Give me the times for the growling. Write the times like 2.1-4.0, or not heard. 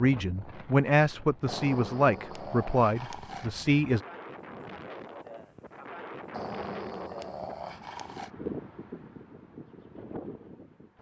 1.4-3.5, 6.3-8.3.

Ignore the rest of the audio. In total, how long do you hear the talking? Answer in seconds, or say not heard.
4 s.